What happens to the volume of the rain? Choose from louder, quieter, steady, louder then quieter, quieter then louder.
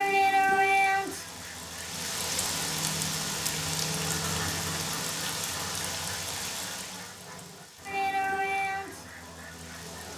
quieter then louder.